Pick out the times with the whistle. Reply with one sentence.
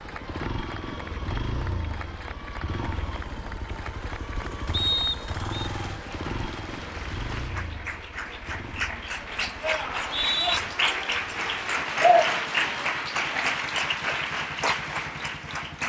The whistle can be heard from 4.7 to 5.7 s and from 9.8 to 10.6 s.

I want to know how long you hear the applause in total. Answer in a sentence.
The applause can be heard for 16 seconds in total.